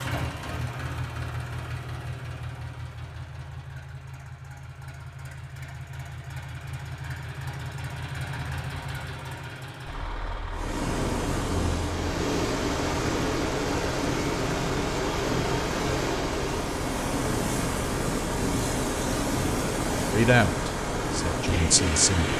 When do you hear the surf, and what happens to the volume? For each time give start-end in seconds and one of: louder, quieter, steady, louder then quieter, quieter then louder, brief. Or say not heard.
10.5-22.3 steady.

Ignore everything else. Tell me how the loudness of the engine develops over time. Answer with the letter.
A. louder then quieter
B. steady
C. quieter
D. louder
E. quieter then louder
B.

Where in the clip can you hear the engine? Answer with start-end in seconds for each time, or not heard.
0.0-22.3.